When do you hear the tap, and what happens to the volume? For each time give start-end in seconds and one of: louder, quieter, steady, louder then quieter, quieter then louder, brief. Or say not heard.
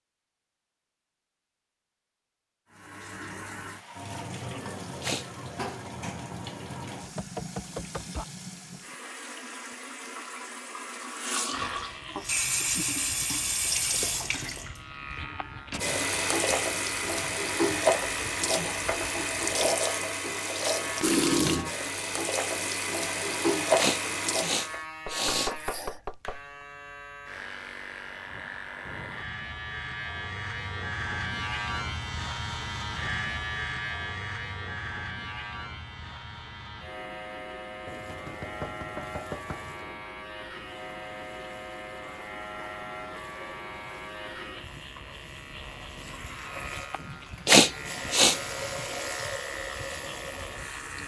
2.7-24.8 louder
37.8-51.0 louder.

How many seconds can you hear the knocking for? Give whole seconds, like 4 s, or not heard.
4 s.